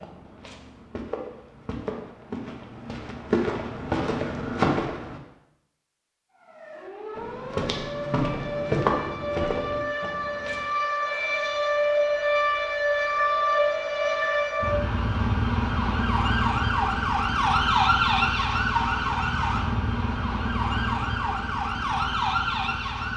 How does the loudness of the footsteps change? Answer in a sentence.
The loudness of the footsteps goes up.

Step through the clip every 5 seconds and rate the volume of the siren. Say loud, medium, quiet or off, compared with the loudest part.
off, medium, loud, loud, loud.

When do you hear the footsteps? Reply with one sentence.
You can hear the footsteps from 0.0 to 5.2 s and from 7.2 to 10.7 s.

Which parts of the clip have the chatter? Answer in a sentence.
You can't hear the chatter here.